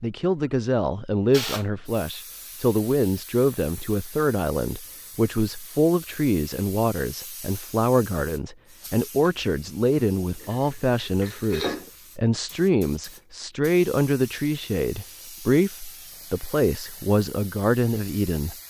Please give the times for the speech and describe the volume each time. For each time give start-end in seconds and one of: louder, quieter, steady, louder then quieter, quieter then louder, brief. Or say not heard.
0.0-18.6 steady.